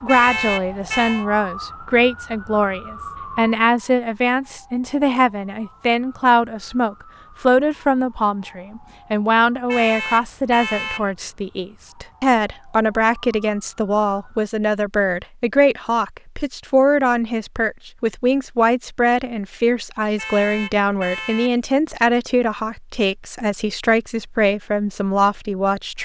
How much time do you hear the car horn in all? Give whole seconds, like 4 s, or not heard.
4 s.